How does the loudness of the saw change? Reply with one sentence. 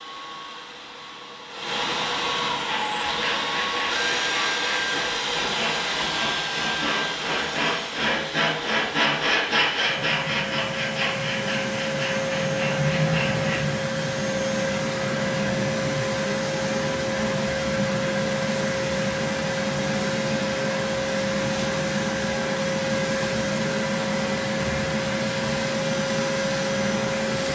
The volume of the saw goes up, then down.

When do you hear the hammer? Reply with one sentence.
You can't hear the hammer here.